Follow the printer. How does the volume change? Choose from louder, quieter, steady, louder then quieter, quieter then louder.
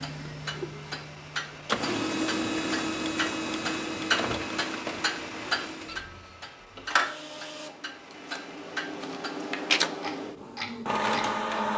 quieter then louder.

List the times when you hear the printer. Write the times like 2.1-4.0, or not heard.
0.0-11.7.